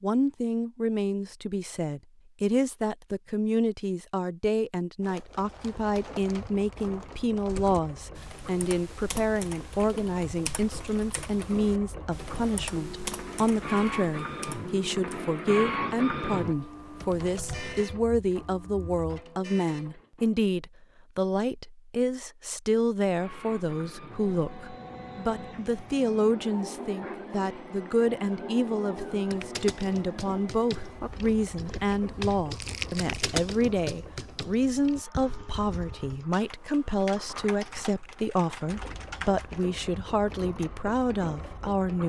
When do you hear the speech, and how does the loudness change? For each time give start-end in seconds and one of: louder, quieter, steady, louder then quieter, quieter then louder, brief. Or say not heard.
0.0-42.0 steady.